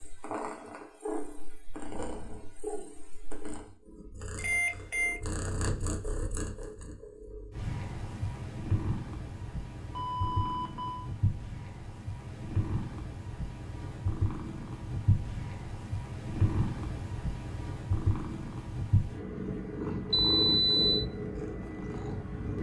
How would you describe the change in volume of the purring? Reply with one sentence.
The volume of the purring goes up.